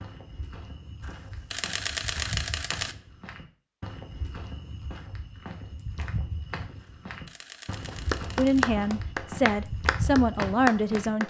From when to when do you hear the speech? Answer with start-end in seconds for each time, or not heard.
8.3-11.2.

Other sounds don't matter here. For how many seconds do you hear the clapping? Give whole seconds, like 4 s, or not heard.
3 s.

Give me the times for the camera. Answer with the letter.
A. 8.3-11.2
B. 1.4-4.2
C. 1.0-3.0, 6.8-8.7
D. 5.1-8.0
C.